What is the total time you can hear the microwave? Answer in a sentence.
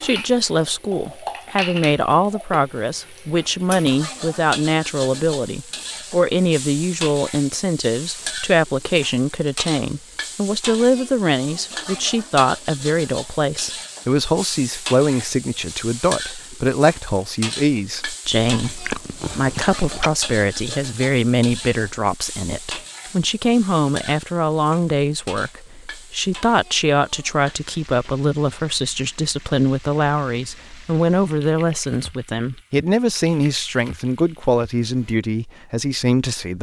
The microwave can't be heard in this clip.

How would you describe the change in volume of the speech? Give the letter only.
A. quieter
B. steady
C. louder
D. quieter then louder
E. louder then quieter
B.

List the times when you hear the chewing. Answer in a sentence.
You can hear the chewing from 18.6 to 20.1 s.